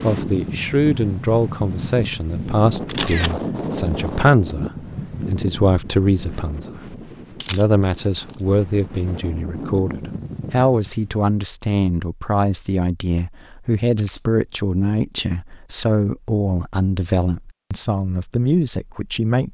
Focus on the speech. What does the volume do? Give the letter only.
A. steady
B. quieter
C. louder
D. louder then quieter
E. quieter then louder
A.